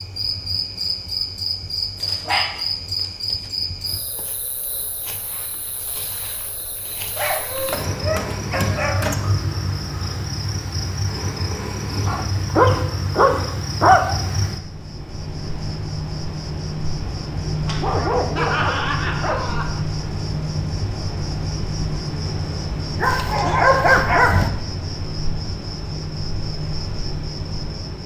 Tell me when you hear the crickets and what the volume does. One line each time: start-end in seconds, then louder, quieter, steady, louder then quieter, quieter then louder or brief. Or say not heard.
0.0-28.0 steady.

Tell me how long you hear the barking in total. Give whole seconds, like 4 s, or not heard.
9 s.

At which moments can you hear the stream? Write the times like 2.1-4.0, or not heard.
not heard.